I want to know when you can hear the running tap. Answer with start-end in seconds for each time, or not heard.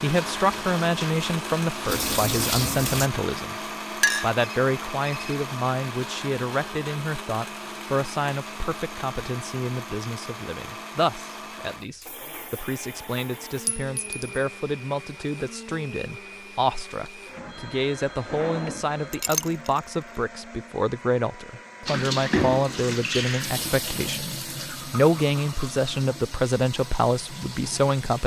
0.1-3.1, 21.9-28.2.